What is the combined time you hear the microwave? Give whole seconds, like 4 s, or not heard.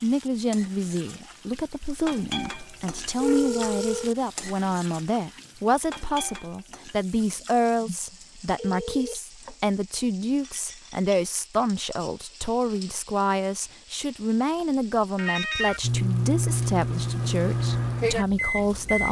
3 s.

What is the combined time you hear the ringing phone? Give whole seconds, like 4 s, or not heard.
4 s.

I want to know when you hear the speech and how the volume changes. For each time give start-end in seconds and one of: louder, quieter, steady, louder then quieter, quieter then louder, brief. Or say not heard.
0.0-19.0 steady.